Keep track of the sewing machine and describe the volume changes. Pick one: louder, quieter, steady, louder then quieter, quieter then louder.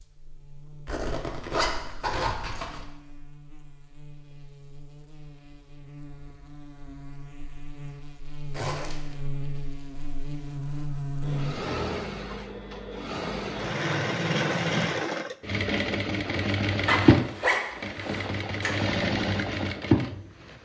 louder.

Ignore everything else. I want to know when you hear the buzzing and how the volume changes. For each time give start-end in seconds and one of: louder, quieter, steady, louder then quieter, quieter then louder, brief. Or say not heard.
0.0-11.6 louder.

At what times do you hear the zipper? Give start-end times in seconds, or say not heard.
0.8-2.9, 8.5-9.2, 16.9-18.9.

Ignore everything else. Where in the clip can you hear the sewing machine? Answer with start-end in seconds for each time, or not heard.
11.2-20.6.